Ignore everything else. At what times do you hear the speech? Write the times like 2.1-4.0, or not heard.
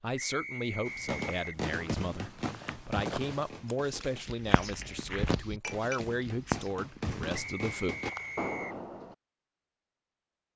0.0-8.0.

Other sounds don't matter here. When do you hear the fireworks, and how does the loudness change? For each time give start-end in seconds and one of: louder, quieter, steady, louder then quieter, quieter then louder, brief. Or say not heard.
0.8-9.2 quieter then louder.